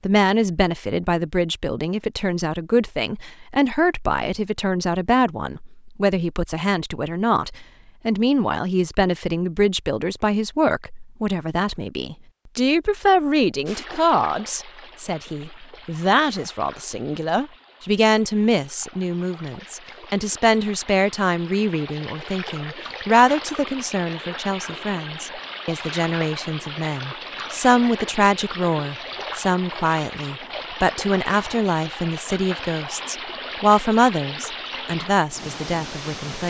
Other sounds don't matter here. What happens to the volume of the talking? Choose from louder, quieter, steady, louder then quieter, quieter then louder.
steady.